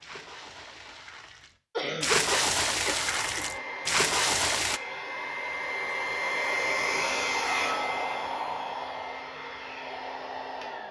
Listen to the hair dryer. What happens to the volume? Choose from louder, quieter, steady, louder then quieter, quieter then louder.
louder then quieter.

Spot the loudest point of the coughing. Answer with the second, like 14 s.
2 s.